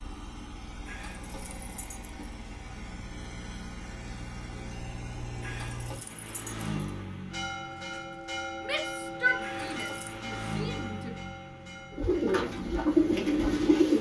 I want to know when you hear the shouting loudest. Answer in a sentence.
The volume of the shouting peaks at 9 seconds.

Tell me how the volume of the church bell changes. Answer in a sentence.
The volume of the church bell goes down.